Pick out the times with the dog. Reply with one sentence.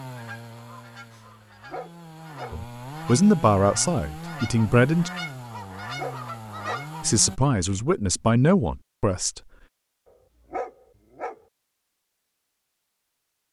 You can hear the dog from 1.2 to 2.6 s, from 6.0 to 6.8 s and from 10.5 to 11.4 s.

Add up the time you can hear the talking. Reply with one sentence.
You can hear the talking for 5 seconds altogether.